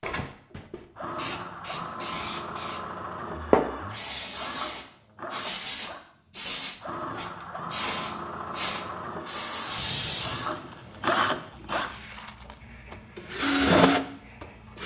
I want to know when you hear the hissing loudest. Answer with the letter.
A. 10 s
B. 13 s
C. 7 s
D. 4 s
D.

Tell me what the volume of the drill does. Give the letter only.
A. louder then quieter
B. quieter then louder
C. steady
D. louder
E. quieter
D.